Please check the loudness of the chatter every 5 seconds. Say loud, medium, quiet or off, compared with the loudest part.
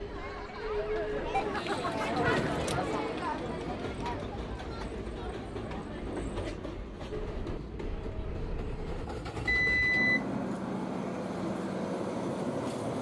loud, medium, off.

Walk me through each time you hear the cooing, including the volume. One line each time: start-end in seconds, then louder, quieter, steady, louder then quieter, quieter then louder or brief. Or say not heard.
not heard.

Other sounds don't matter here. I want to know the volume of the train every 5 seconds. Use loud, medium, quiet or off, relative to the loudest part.
medium, medium, loud.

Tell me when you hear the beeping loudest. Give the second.
10 s.